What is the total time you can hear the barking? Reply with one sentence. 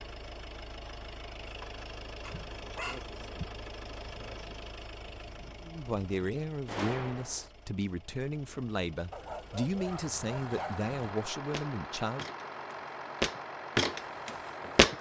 You can hear the barking for 3 seconds altogether.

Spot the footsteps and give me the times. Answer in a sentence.
The footsteps can be heard from 10.5 to 14.9 s.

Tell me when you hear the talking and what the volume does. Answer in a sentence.
You can hear the talking from 5.6 to 12.3 s, at a steady volume.